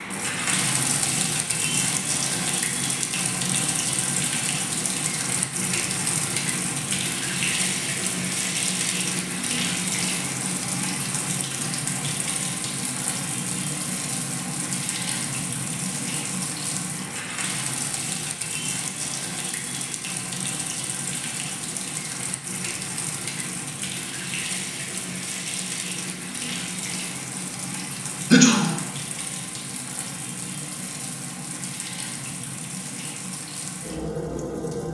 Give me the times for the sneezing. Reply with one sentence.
The sneezing can be heard from 28.3 to 28.8 s.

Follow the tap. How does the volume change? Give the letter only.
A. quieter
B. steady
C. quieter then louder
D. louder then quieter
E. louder
A.